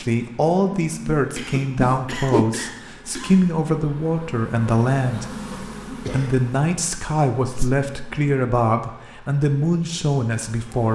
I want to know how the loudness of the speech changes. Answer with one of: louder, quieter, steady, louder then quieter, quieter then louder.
steady.